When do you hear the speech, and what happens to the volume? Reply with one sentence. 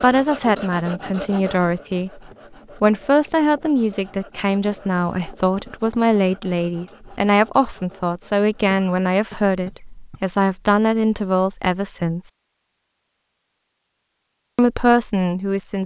The speech can be heard briefly from 0.0 to 2.2 s; from 2.8 to 12.3 s, at a steady volume; and briefly from 14.6 to 15.8 s.